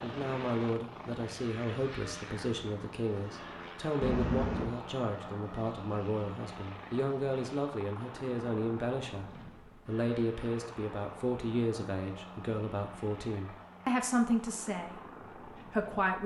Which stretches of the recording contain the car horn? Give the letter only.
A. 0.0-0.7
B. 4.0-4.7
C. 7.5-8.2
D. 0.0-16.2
B.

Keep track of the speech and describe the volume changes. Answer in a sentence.
The loudness of the speech stays about the same.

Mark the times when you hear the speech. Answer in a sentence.
The speech can be heard from 0.0 to 16.2 s.